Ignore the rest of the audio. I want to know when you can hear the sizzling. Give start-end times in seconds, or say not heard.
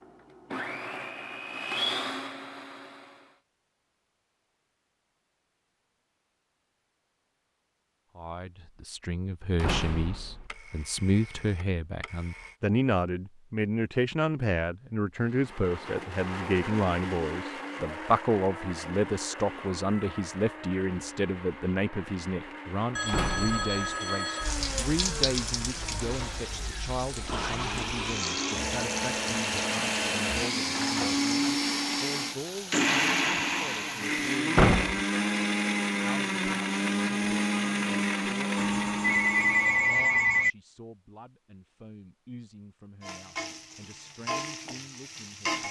24.4-34.4, 43.0-45.6.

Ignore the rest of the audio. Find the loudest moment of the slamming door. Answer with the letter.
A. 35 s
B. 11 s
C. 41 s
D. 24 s
A.